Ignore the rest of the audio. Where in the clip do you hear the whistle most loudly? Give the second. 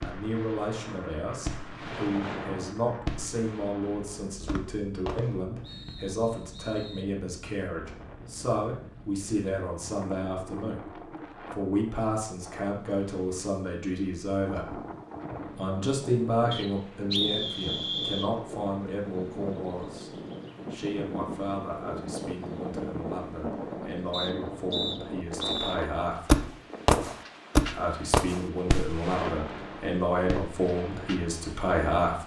17 s.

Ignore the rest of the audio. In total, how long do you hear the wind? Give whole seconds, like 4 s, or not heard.
32 s.